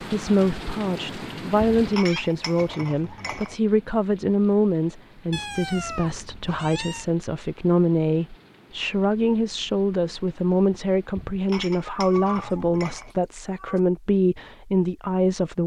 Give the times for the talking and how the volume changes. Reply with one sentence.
You can hear the talking from 0.0 to 15.6 s, at a steady volume.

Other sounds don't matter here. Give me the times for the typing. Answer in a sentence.
You can't hear the typing here.